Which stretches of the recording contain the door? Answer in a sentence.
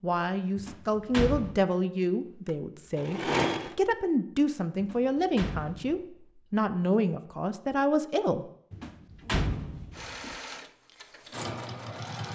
You can hear the door from 0.6 to 1.6 s, from 4.8 to 6.0 s and from 8.7 to 10.3 s.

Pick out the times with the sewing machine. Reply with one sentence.
You can hear the sewing machine from 2.5 to 3.8 s and from 9.9 to 12.3 s.